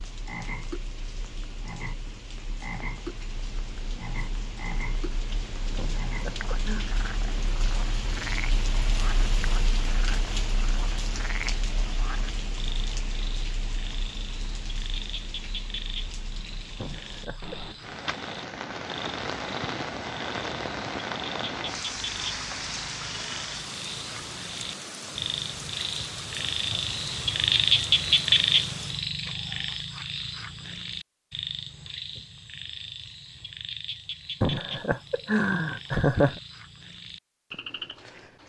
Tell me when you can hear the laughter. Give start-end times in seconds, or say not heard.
5.8-6.8, 16.8-17.8, 34.4-36.4.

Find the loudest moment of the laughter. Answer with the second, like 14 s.
36 s.